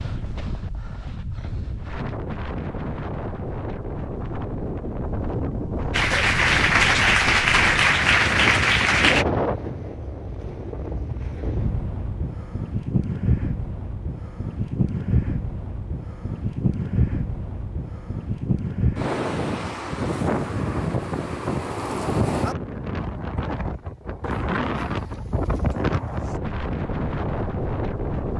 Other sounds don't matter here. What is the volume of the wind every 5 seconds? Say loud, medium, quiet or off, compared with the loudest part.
medium, loud, loud, loud, loud, loud.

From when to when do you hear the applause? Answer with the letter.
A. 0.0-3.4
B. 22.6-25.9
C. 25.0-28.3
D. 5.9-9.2
D.